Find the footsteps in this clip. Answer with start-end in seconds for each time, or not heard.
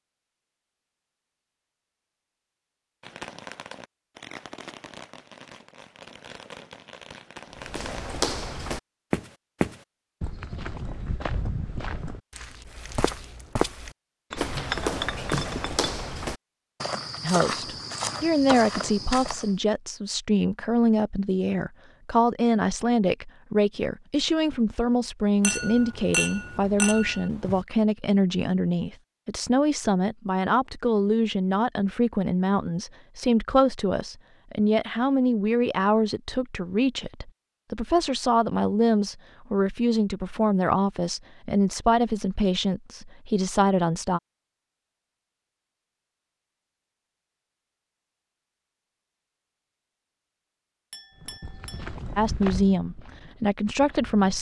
7.5-19.6, 51.2-54.3.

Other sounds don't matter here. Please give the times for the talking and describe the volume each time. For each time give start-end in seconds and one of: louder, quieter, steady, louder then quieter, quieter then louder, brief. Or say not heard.
17.2-44.2 steady
52.1-54.3 brief.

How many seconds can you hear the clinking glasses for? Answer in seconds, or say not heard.
5 s.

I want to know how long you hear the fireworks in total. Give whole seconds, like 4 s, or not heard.
5 s.